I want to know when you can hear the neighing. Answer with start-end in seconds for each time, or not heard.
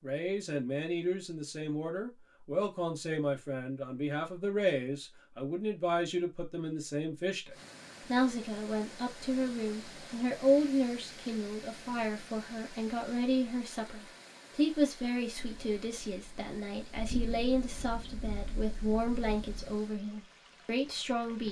not heard.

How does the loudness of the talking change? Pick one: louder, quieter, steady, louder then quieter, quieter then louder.
steady.